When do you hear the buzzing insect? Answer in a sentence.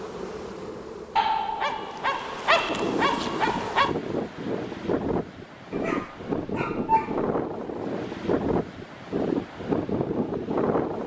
You can hear the buzzing insect from 0.0 to 4.0 s.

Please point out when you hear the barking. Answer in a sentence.
The barking can be heard from 1.1 to 4.0 s and from 5.7 to 7.3 s.